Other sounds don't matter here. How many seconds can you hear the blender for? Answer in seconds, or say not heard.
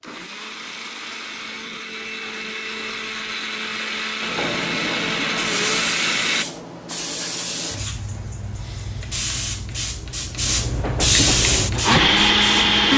8 s.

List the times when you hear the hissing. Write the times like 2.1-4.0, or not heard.
4.2-12.9.